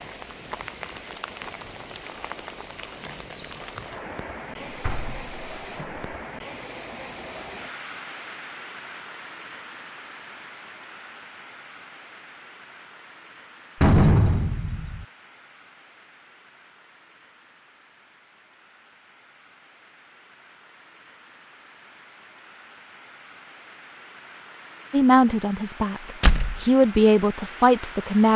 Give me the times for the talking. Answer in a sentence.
The talking can be heard from 24.9 to 28.3 s.